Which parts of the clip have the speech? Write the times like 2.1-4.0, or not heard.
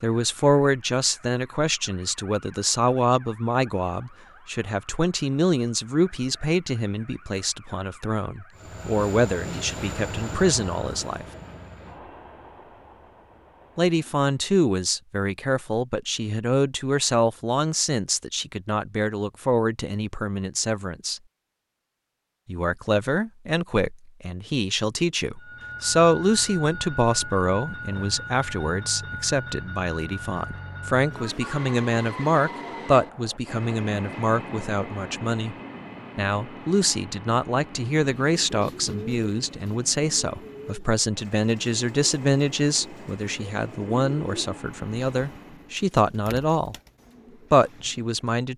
0.0-11.2, 13.8-21.2, 22.4-35.5, 36.1-46.8, 47.5-48.5.